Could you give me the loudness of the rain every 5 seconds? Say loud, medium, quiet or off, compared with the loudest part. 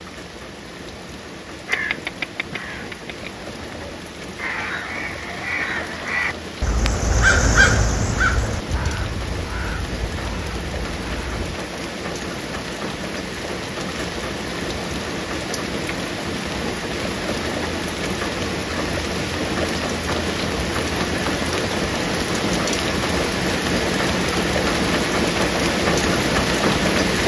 quiet, quiet, medium, medium, loud, loud.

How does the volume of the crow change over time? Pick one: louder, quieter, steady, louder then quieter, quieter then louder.
louder then quieter.